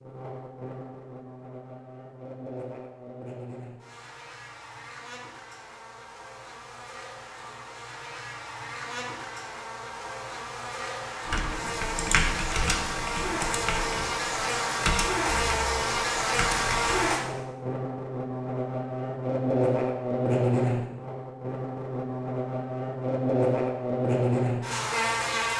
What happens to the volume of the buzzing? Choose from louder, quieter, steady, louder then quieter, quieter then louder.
louder.